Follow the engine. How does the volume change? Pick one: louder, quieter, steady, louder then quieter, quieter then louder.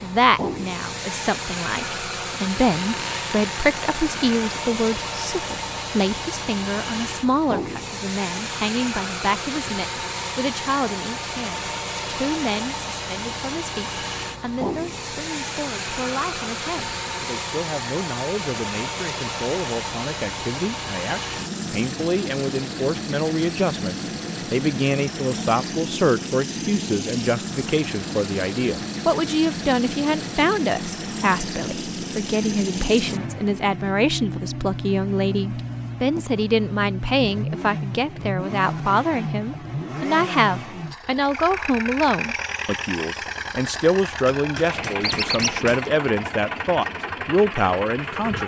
steady.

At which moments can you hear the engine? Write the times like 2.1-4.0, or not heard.
0.0-48.4.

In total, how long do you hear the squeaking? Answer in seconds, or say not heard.
2 s.